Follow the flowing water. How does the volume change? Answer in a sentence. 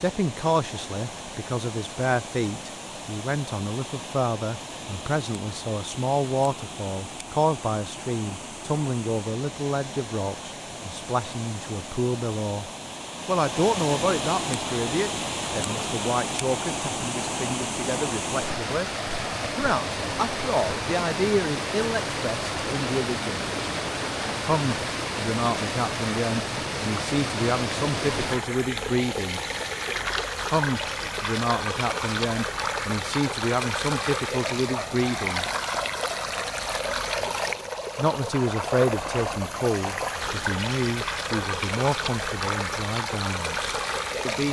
The volume of the flowing water goes up.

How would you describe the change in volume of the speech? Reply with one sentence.
The volume of the speech stays about the same.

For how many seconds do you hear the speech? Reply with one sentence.
The speech can be heard for 39 seconds in total.